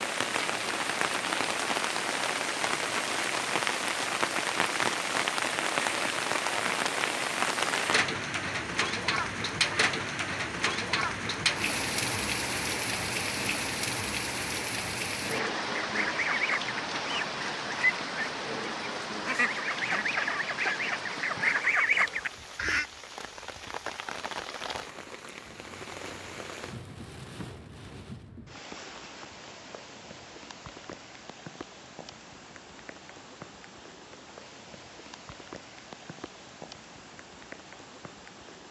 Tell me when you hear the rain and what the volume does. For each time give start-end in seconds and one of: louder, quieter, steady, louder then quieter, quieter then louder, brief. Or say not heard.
0.0-38.6 quieter.